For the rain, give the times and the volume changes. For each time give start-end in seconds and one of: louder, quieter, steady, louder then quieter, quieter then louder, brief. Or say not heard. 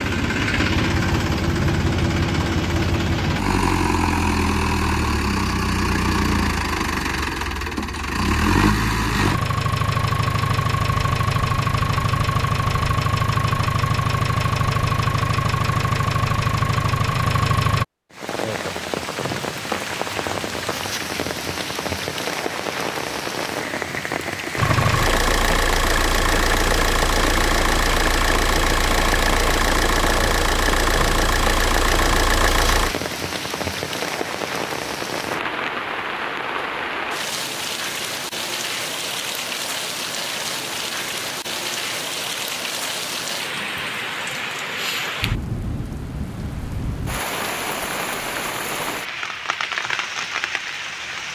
18.1-51.3 steady.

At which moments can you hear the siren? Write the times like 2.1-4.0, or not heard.
not heard.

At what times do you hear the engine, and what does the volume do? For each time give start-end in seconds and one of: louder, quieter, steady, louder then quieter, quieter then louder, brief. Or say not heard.
0.0-17.9 steady
24.6-33.1 steady.